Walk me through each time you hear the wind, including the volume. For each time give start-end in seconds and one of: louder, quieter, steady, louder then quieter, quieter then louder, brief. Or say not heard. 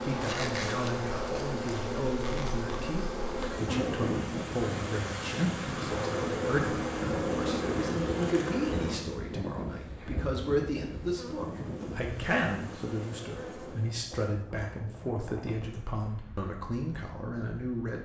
3.5-18.0 quieter.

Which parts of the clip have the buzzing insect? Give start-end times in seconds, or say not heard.
0.0-14.1.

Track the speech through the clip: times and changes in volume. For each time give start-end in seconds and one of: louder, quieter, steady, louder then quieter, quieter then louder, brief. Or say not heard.
0.0-18.0 steady.